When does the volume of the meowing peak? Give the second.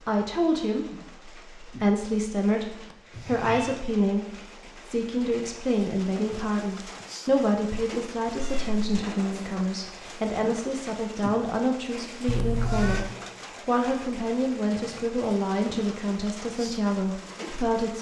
13 s.